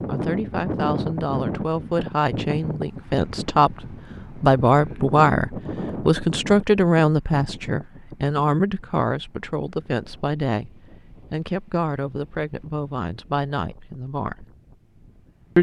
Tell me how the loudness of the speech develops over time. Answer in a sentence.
The volume of the speech goes up, then down.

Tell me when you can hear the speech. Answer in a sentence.
The speech can be heard from 0.1 to 14.4 s.